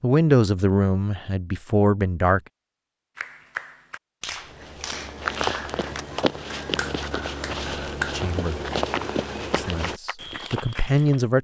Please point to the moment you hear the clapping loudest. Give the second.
8 s.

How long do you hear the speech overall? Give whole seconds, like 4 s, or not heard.
5 s.